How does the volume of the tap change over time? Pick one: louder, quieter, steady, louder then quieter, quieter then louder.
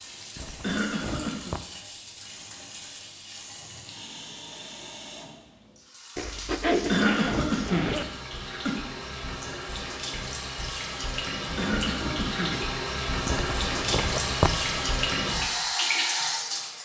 louder.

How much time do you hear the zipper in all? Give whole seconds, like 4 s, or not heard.
5 s.